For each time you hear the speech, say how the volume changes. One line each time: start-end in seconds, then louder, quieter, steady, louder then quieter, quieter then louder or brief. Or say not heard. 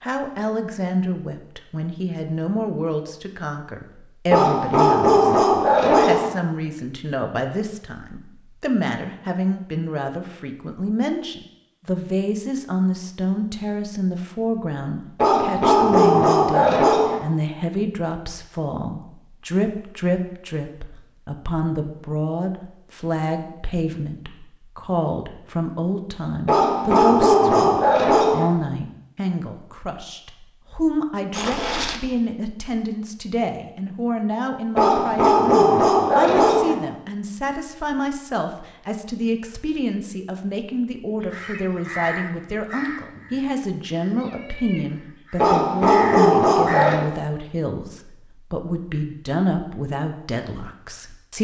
0.0-51.3 steady.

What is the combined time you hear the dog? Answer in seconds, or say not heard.
10 s.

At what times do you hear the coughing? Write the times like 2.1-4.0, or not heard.
not heard.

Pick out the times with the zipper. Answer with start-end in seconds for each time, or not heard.
31.3-32.0.